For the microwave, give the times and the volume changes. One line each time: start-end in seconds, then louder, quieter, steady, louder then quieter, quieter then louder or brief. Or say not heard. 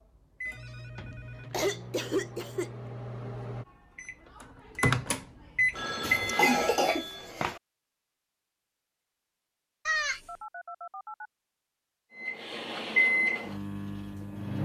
0.0-6.7 louder
12.2-14.6 brief.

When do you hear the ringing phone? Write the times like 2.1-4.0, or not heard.
0.5-1.7, 5.7-7.3, 10.2-11.3.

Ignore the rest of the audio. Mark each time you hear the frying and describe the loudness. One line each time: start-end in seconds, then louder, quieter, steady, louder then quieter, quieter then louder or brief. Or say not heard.
not heard.